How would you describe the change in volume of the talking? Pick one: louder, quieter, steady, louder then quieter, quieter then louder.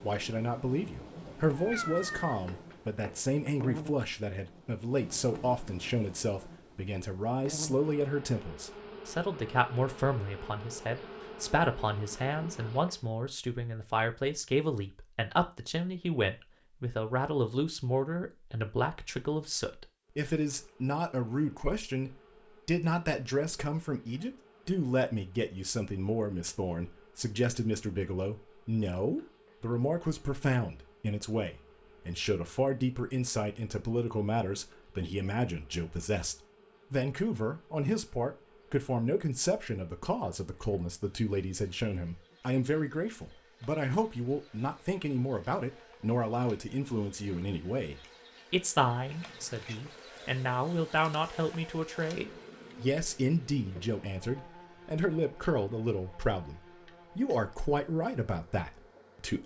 steady.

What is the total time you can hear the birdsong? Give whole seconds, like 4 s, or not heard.
not heard.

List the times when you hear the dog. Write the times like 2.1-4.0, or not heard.
not heard.